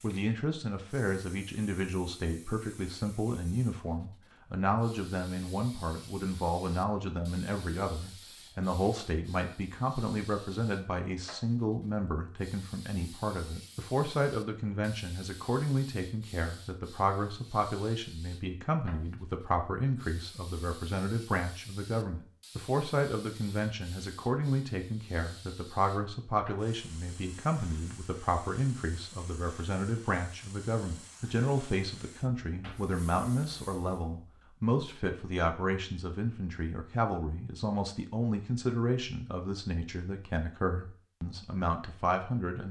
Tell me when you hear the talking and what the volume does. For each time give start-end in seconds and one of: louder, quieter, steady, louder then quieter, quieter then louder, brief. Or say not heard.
0.0-42.6 steady.